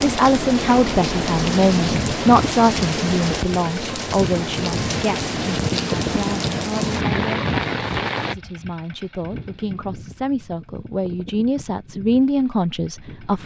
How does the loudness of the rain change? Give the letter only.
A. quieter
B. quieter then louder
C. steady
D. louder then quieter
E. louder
C.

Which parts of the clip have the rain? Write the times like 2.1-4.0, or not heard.
0.0-8.3.